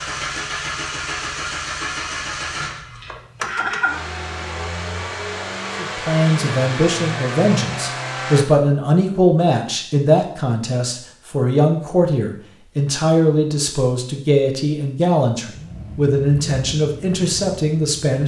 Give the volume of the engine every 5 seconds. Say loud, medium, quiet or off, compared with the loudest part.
loud, loud, off, medium.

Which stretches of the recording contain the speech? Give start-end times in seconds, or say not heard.
5.8-18.2.